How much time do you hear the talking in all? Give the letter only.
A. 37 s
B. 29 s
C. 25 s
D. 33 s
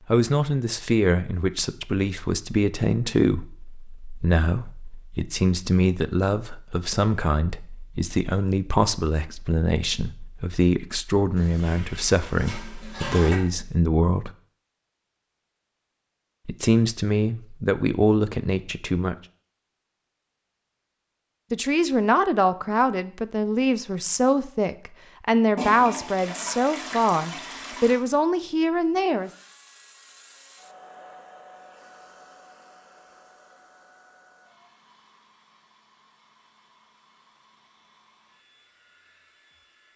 C.